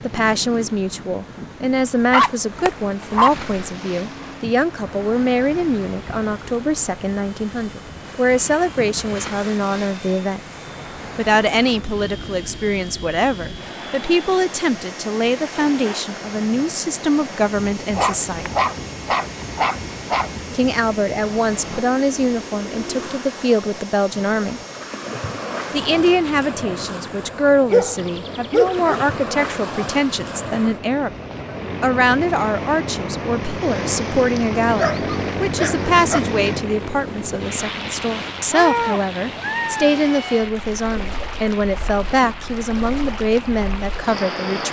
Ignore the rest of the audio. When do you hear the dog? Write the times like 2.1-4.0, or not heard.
2.1-3.4, 17.9-20.3, 27.7-29.1, 34.8-36.2.